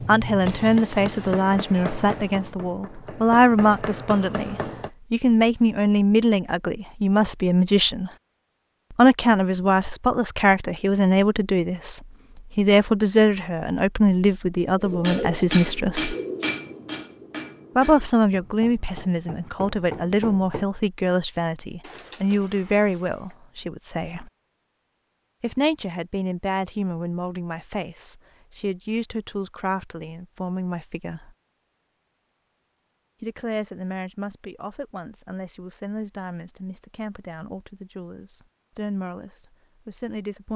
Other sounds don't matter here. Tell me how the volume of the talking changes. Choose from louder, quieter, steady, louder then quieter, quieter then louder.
quieter.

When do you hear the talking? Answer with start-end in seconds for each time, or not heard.
0.0-8.1, 8.9-16.1, 17.8-24.3, 25.4-31.4, 33.2-40.5.